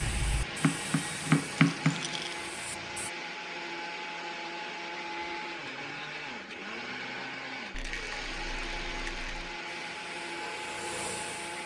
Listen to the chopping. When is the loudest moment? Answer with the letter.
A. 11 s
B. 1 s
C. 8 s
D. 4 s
B.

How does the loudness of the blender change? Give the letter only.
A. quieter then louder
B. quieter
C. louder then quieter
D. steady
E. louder
D.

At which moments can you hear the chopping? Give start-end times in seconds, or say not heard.
0.0-2.2.